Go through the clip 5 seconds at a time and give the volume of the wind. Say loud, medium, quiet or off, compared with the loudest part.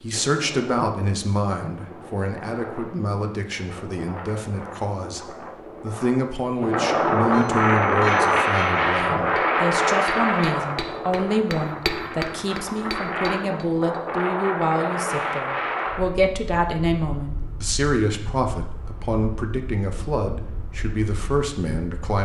quiet, loud, medium, medium, quiet.